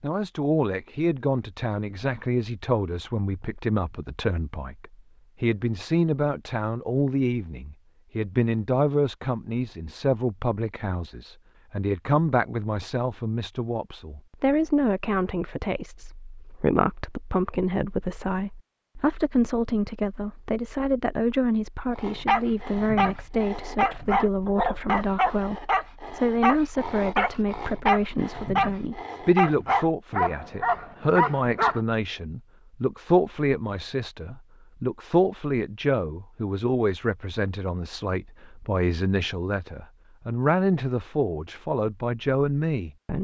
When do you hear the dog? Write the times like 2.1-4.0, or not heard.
21.9-31.8.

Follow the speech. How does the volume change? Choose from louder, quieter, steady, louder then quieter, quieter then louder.
steady.